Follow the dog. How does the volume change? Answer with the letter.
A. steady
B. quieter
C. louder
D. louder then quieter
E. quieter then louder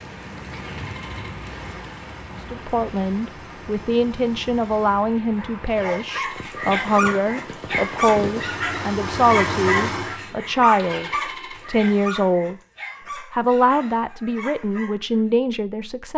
B.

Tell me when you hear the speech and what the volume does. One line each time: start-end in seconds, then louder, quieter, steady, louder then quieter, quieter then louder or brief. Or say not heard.
2.4-12.6 steady
13.3-16.1 brief.